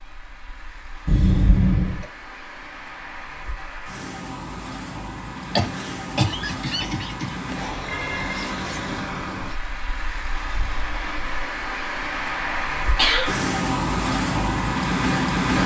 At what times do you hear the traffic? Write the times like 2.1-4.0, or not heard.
0.0-15.6.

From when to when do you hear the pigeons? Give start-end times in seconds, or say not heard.
not heard.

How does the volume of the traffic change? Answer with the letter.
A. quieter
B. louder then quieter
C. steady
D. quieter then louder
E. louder
E.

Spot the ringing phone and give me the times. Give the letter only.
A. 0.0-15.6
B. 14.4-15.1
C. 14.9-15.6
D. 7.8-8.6
D.